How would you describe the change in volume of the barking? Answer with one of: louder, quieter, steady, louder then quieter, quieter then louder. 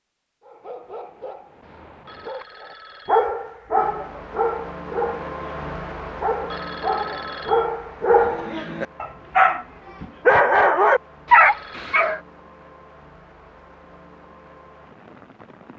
louder.